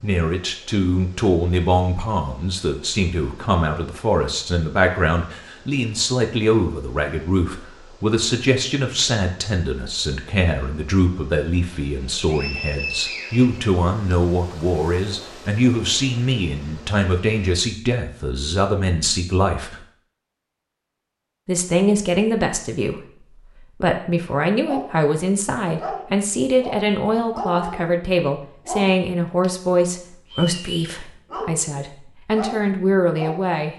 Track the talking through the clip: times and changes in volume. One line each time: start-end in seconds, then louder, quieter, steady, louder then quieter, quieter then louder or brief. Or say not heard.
0.0-19.8 steady
21.4-33.7 steady.